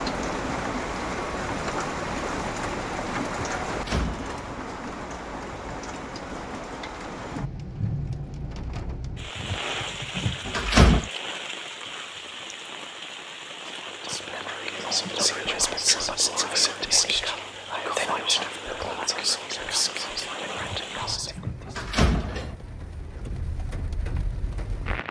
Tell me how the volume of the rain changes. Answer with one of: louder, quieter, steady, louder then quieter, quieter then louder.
quieter.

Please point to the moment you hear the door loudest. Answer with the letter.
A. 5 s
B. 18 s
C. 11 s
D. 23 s
C.